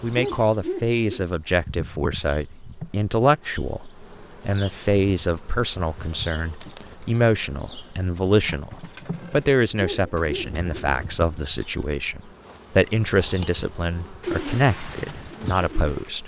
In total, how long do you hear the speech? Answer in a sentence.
The speech can be heard for 16 seconds in total.